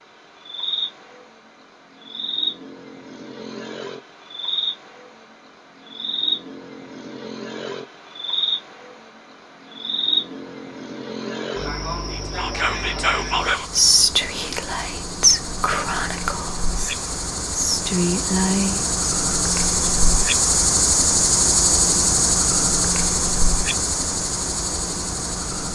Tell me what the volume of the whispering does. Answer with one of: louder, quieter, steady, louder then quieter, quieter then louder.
quieter then louder.